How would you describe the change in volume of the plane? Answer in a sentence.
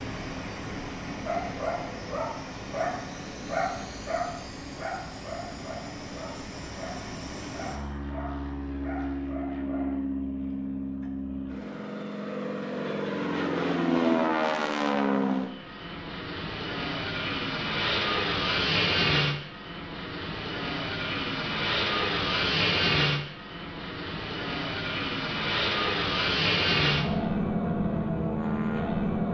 The volume of the plane goes up.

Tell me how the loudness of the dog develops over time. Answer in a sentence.
The volume of the dog goes down.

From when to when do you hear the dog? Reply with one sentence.
The dog can be heard from 1.2 to 10.2 s.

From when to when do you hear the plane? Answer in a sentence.
You can hear the plane from 0.0 to 29.2 s.